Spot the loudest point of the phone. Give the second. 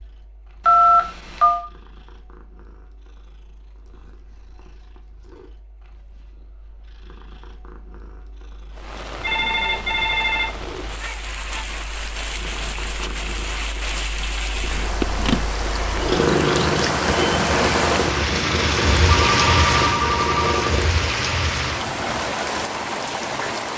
1 s.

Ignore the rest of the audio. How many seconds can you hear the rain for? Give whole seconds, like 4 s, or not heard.
15 s.